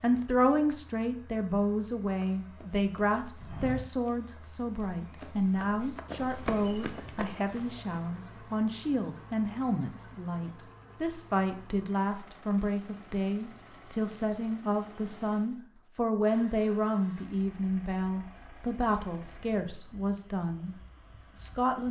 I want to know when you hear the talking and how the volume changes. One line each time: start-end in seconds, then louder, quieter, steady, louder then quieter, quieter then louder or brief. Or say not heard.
0.0-20.8 steady
21.4-21.8 brief.